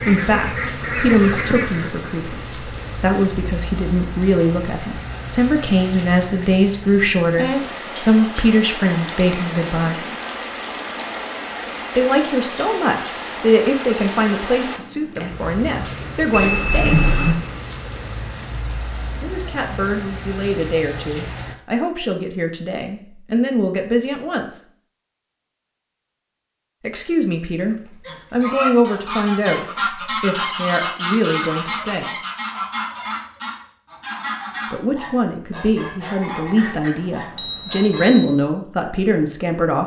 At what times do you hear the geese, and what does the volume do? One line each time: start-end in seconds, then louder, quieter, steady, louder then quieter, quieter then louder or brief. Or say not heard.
0.0-1.9 brief
27.7-38.1 quieter.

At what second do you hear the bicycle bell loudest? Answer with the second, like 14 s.
17 s.